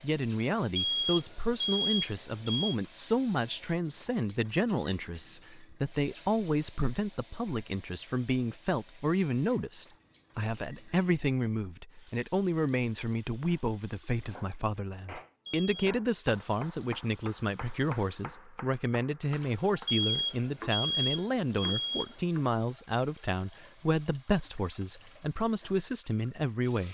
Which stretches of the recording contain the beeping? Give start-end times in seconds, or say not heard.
0.8-2.8, 15.4-15.9, 19.9-22.1.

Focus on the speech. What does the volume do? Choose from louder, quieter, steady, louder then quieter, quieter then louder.
steady.